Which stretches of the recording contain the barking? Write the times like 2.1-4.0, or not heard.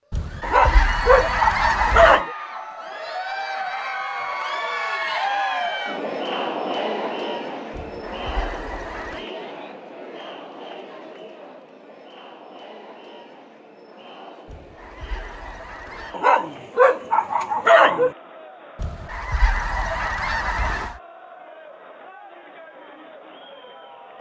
0.4-2.3, 16.1-18.1.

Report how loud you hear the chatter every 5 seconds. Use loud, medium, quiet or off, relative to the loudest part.
loud, loud, quiet, quiet, quiet.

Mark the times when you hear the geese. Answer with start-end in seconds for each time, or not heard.
0.1-2.2, 7.7-9.2, 14.4-16.1, 18.8-21.0.